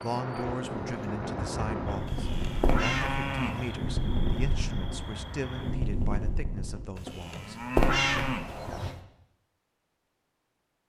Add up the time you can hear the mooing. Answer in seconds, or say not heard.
4 s.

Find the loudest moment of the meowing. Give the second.
8 s.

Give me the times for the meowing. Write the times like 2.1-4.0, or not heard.
2.6-3.6, 7.8-8.9.